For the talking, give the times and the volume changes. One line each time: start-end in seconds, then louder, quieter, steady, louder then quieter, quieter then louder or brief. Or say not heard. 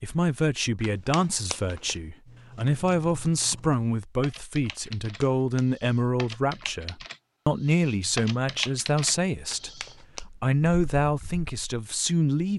0.0-12.5 steady.